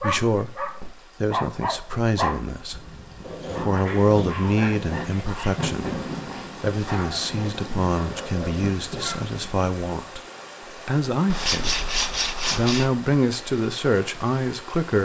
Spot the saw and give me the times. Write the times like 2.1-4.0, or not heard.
3.2-5.4, 11.2-12.9.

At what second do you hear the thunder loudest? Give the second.
6 s.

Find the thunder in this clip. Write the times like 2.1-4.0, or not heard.
5.4-9.5.